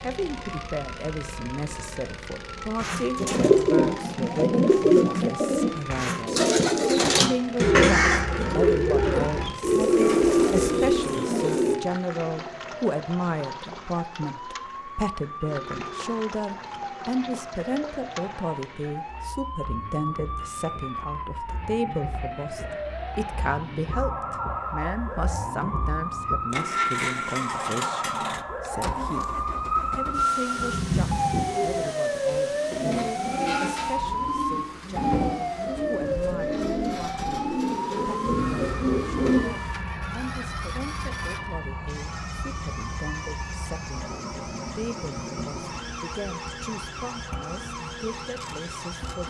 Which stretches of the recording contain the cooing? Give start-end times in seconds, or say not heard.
2.8-11.8, 30.5-39.5.